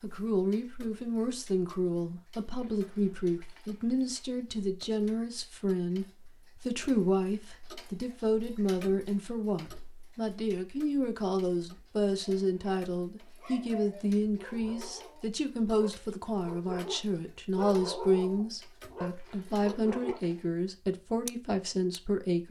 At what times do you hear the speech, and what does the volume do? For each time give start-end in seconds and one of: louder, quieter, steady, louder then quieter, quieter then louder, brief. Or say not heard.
0.0-22.4 steady.